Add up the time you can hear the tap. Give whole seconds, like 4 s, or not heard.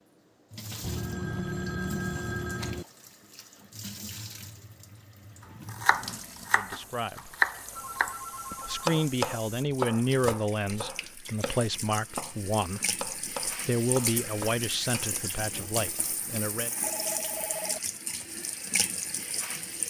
20 s.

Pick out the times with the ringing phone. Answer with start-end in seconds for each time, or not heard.
0.8-2.9, 7.8-9.1, 16.8-17.9.